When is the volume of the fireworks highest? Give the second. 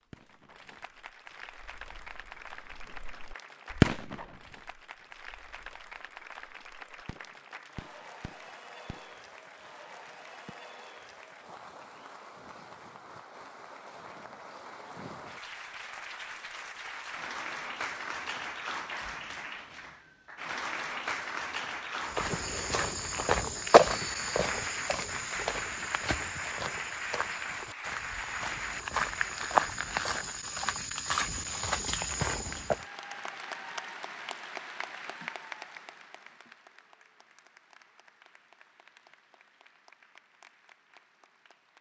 4 s.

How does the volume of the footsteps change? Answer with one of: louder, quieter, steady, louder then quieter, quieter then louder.
quieter then louder.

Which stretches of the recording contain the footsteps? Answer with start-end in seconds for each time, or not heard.
22.1-32.8.